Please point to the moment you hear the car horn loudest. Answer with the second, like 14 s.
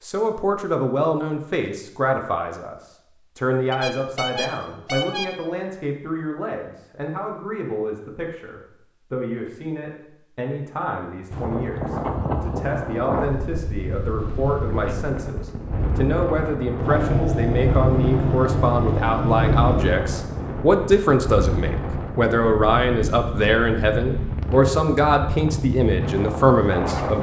5 s.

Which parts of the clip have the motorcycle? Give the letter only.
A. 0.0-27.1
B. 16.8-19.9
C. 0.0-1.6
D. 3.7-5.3
B.